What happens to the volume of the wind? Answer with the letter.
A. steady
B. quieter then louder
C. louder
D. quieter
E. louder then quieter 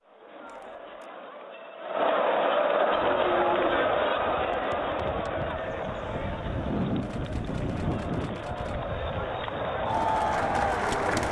E.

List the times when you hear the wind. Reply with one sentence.
The wind can be heard from 2.9 to 10.9 s.